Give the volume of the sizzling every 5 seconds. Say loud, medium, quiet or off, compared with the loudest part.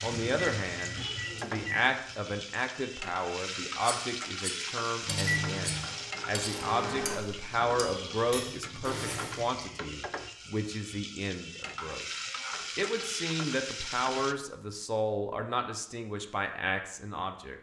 loud, loud, loud, off.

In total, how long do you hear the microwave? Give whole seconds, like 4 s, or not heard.
4 s.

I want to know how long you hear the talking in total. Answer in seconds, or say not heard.
17 s.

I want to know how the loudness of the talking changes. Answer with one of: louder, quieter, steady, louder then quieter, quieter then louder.
steady.